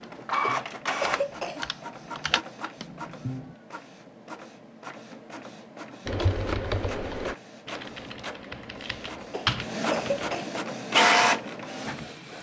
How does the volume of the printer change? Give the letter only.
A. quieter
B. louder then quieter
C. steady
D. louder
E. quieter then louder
E.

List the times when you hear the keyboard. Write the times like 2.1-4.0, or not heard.
0.0-3.5, 6.0-10.4.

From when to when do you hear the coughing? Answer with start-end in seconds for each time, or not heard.
0.4-1.6, 9.3-10.6.